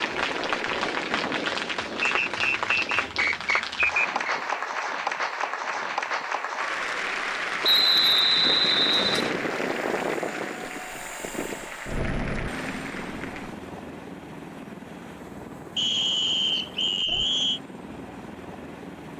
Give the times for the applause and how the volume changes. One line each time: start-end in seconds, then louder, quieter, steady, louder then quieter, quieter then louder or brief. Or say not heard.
0.0-13.6 quieter.